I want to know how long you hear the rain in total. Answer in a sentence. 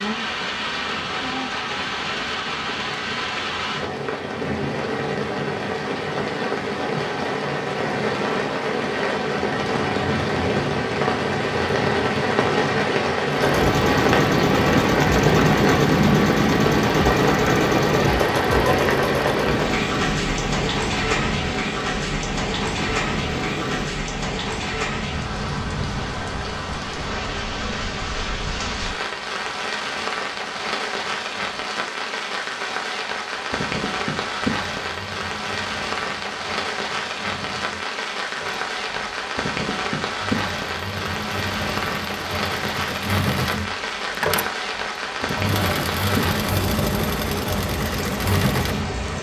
You can hear the rain for 49 seconds altogether.